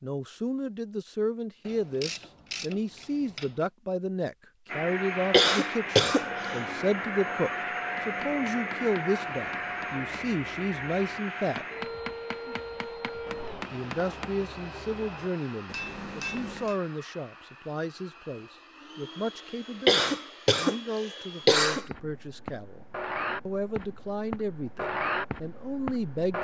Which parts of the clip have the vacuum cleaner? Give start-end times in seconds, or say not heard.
4.7-26.3.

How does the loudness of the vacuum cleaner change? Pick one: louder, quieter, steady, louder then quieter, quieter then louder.
quieter then louder.